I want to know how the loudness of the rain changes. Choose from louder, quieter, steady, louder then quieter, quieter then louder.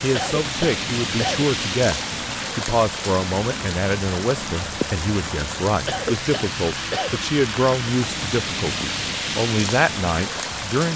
steady.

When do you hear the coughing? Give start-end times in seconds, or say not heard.
0.1-1.6, 5.8-7.3.